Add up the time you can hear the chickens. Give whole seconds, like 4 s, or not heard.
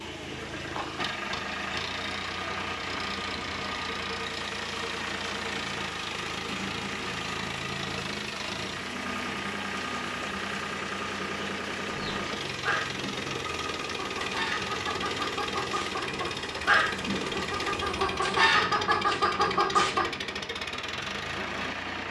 8 s.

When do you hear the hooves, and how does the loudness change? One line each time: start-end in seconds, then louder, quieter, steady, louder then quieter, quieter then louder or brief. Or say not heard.
not heard.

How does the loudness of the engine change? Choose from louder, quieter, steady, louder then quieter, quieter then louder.
steady.